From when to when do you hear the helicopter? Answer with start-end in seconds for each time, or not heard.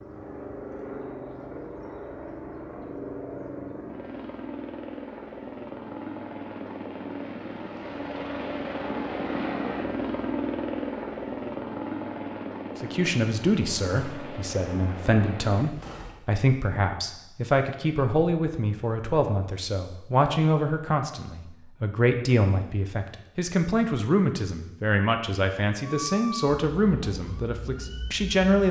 0.0-16.2.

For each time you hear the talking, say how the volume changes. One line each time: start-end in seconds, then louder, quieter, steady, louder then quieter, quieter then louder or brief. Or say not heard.
12.8-28.6 steady.